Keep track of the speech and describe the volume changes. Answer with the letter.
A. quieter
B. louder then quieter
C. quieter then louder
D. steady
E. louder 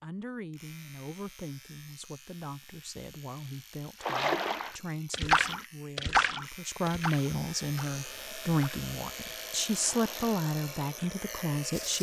E.